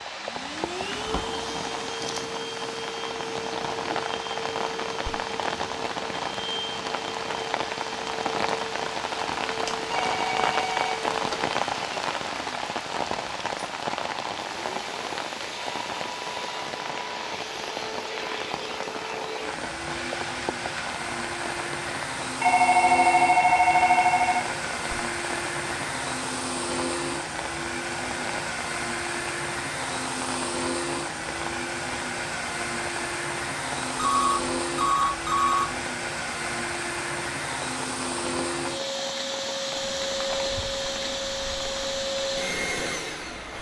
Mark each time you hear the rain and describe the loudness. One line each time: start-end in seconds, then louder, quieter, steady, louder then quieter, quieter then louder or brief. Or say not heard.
0.0-43.5 quieter.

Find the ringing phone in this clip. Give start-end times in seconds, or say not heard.
9.7-11.4, 22.4-24.4, 34.0-35.6.